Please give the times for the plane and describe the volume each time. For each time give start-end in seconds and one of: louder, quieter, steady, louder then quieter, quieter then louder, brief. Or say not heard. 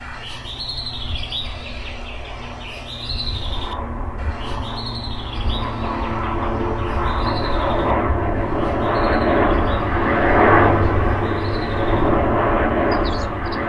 0.0-13.6 louder.